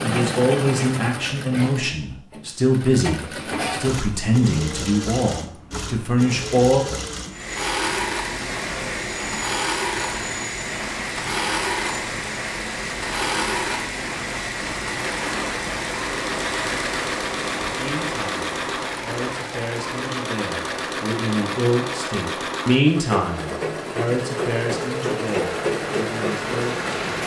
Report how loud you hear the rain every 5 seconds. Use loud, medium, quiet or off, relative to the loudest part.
off, loud, loud, loud, medium, loud.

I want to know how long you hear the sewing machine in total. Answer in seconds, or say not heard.
27 s.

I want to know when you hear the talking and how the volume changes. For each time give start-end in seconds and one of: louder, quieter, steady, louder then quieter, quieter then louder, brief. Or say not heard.
0.0-6.9 steady
17.8-26.9 louder then quieter.